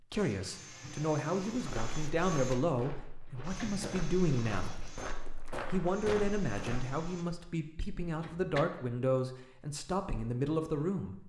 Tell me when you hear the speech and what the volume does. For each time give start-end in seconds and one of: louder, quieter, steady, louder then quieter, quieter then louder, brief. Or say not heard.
0.0-11.2 steady.